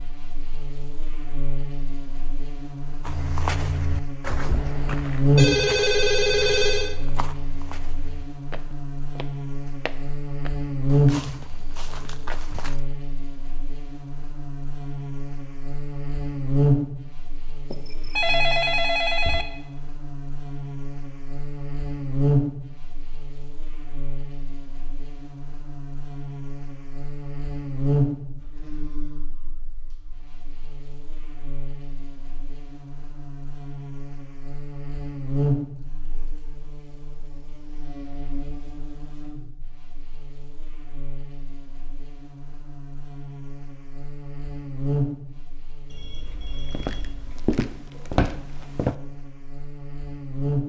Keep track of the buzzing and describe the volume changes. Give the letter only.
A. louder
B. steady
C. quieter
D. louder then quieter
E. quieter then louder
C.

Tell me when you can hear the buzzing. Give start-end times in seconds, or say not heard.
0.0-50.6.